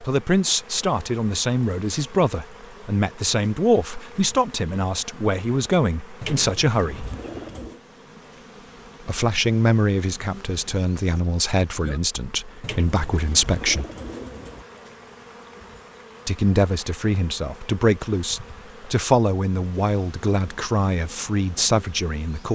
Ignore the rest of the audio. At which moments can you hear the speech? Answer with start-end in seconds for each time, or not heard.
0.0-7.1, 9.1-13.8, 16.2-22.5.